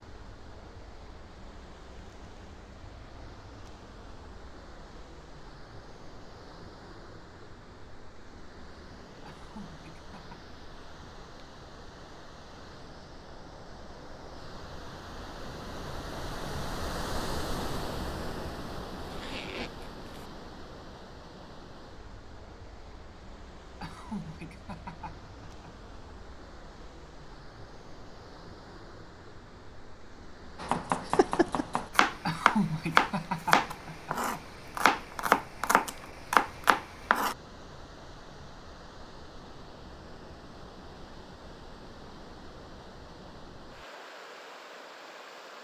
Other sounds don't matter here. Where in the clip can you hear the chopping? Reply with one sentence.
You can hear the chopping from 30.6 to 37.4 s.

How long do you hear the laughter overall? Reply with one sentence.
The laughter can be heard for 5 seconds in total.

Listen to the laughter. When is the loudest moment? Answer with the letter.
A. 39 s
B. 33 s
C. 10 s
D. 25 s
B.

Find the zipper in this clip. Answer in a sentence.
You can hear the zipper from 18.9 to 20.3 s.